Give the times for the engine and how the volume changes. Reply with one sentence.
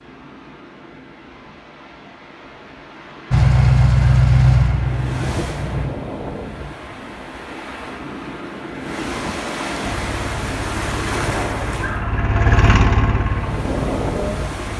The engine can be heard briefly from 3.3 to 5.9 s; and from 9.8 to 14.7 s, getting louder then quieter.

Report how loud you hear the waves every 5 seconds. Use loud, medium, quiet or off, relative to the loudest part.
quiet, loud, loud.